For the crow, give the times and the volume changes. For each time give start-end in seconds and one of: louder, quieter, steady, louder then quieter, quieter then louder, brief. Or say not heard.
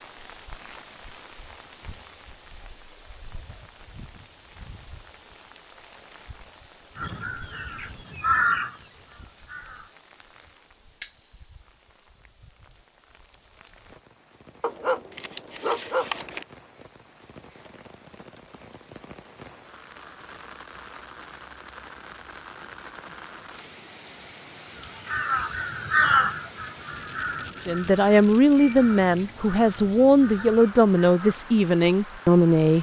7.0-9.9 brief
24.8-31.4 quieter.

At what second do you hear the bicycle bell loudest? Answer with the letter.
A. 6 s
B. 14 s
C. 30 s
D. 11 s
D.